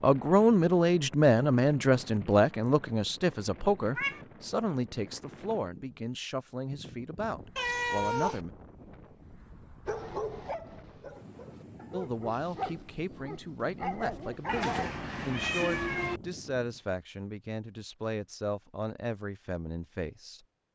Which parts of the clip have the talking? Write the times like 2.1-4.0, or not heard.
0.0-8.5, 11.9-20.4.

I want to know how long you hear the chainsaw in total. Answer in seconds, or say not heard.
not heard.